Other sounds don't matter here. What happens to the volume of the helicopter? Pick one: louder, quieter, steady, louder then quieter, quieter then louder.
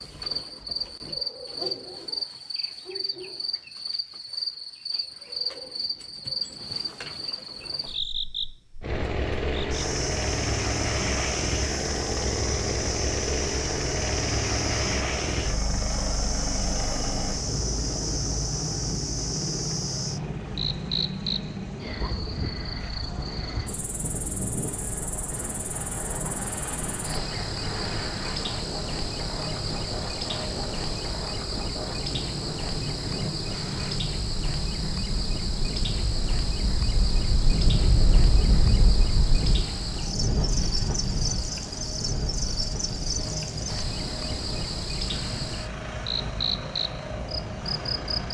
quieter.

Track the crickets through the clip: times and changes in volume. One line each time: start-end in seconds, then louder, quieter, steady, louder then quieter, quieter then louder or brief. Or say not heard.
0.0-48.3 steady.